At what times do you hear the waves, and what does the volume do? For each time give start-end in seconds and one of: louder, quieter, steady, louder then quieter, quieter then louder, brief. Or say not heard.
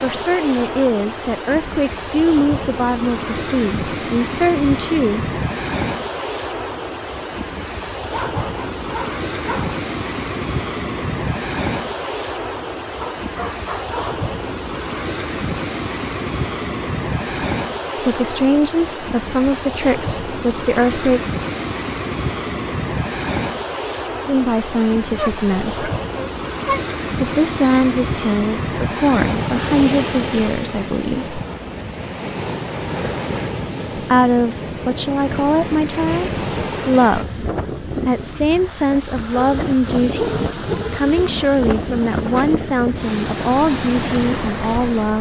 0.0-45.1 steady.